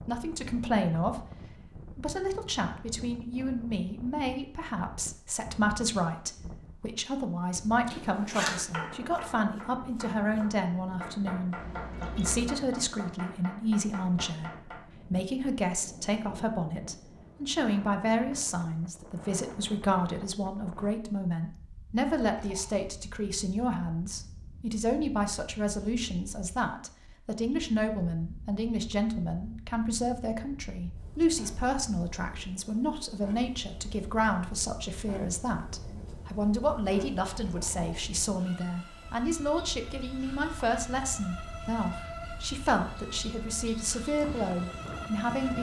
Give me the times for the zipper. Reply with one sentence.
You can hear the zipper from 7.8 to 8.7 s.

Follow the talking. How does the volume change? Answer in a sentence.
The volume of the talking stays about the same.